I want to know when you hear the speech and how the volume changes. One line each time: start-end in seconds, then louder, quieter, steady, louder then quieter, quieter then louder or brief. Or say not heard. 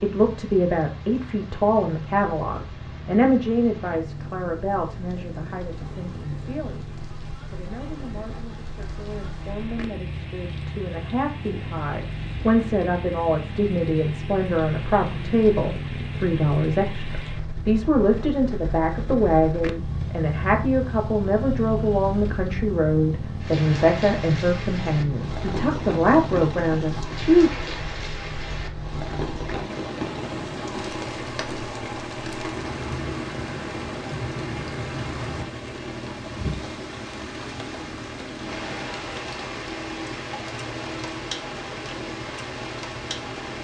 0.0-27.5 quieter then louder.